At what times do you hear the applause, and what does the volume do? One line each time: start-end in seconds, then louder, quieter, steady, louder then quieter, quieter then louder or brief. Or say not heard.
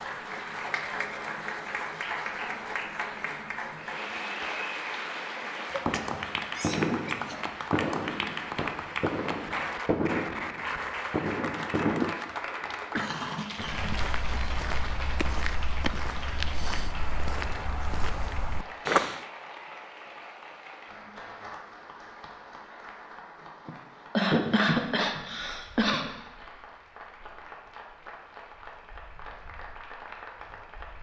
0.0-30.9 quieter.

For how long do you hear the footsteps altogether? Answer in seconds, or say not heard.
6 s.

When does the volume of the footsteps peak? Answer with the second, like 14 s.
19 s.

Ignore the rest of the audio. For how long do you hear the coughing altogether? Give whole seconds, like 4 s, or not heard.
6 s.